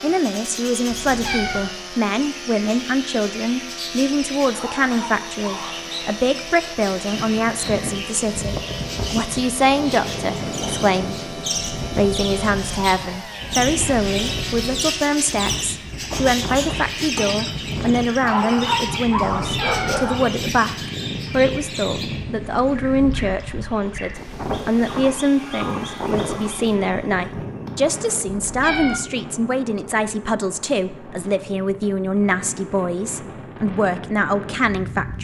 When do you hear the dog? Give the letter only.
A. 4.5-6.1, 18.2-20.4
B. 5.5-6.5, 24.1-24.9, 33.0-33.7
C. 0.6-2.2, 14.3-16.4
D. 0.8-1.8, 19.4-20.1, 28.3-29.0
A.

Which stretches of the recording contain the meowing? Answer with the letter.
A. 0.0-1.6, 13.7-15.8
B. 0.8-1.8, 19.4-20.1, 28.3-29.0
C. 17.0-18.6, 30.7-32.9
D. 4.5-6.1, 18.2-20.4
B.